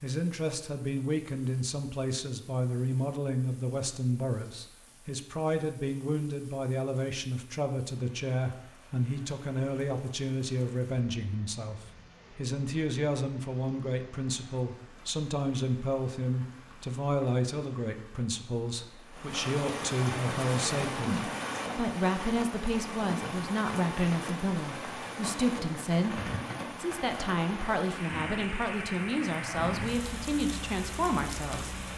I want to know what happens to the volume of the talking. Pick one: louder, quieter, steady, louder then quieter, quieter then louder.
steady.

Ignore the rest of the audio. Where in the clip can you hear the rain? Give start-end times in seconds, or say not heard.
0.0-31.9.